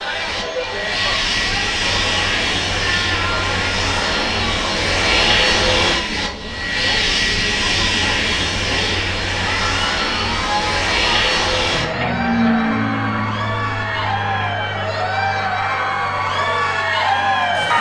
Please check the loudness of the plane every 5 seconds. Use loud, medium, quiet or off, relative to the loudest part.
loud, loud, loud, quiet.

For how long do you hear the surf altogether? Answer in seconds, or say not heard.
not heard.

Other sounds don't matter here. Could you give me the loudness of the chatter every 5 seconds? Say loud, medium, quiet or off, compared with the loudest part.
medium, medium, medium, loud.